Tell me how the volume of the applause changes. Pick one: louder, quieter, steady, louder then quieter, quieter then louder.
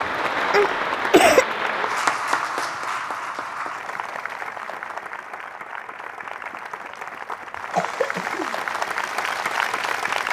quieter then louder.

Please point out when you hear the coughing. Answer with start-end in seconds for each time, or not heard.
0.5-1.4, 7.7-8.6.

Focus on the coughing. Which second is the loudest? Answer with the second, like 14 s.
1 s.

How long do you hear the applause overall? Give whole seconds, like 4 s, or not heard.
10 s.